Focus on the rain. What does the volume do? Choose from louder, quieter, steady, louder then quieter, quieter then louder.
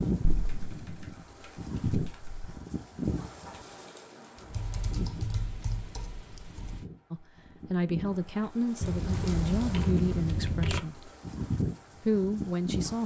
quieter then louder.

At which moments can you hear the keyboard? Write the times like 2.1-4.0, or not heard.
0.3-2.6, 4.5-6.8, 8.8-10.8.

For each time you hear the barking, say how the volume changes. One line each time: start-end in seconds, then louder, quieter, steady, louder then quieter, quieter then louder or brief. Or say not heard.
not heard.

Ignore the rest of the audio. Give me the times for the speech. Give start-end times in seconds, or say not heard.
7.1-11.1, 12.0-13.0.